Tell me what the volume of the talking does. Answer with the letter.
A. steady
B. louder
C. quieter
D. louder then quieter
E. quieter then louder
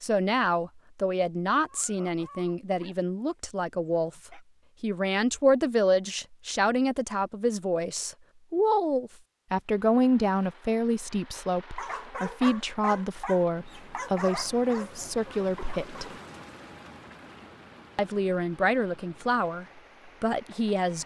A.